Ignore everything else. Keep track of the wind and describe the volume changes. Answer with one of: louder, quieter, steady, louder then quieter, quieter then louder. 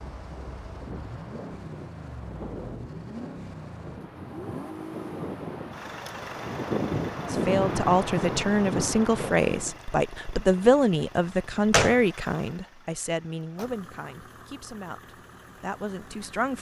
louder.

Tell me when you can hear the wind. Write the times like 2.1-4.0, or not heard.
0.0-9.8.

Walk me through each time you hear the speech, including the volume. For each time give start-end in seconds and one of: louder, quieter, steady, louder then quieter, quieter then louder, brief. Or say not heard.
7.2-16.5 quieter.